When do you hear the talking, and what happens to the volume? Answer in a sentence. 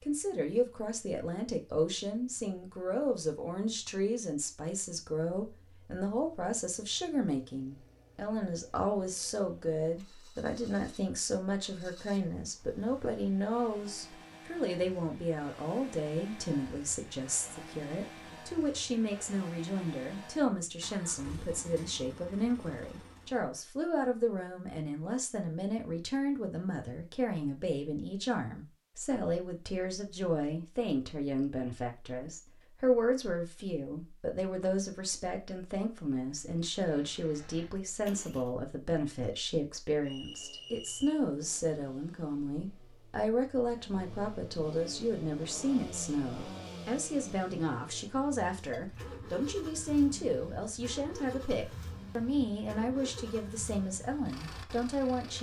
The talking can be heard from 0.0 to 55.3 s, at a steady volume.